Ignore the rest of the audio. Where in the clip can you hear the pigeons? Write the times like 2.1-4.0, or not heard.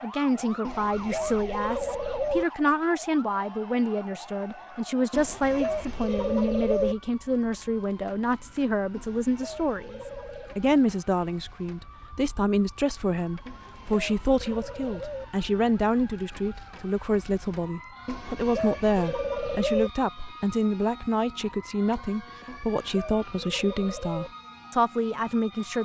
0.6-2.5, 5.1-7.0, 8.9-10.6, 13.4-15.2, 18.1-19.9, 22.4-24.3.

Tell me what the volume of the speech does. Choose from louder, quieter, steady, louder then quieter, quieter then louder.
steady.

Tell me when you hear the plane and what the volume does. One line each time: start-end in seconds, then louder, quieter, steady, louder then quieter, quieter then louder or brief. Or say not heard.
not heard.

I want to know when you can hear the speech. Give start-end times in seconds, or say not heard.
0.0-25.7.